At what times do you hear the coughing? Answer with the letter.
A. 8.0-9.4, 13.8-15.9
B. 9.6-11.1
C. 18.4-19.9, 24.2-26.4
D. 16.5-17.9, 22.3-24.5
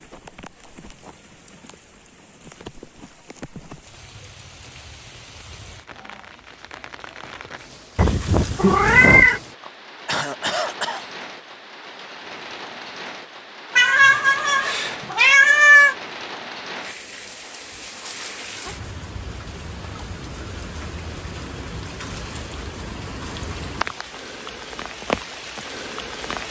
B.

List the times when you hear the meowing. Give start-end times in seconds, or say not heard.
8.0-9.4, 13.8-15.9.